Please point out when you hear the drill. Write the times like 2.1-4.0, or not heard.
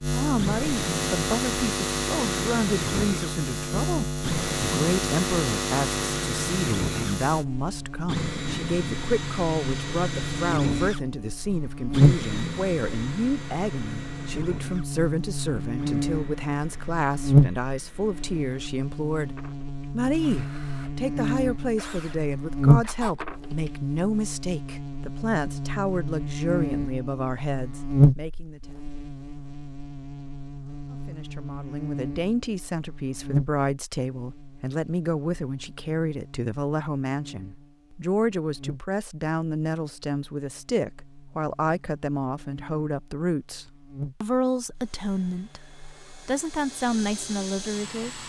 0.3-23.7, 44.8-48.2.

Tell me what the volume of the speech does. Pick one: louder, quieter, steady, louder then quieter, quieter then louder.
steady.